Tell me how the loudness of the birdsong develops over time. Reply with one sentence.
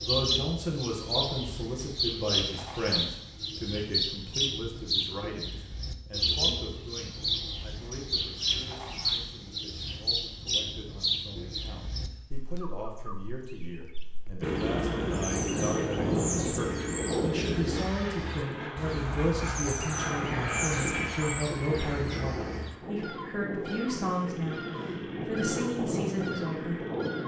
The loudness of the birdsong goes down.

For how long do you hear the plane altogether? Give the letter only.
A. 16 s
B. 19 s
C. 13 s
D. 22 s
C.